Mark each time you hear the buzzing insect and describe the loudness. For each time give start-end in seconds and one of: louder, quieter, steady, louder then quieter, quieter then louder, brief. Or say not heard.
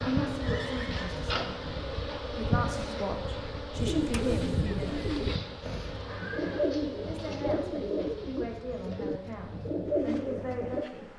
0.0-11.1 quieter.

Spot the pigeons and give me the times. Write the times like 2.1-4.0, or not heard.
3.7-10.9.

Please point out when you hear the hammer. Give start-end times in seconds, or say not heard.
not heard.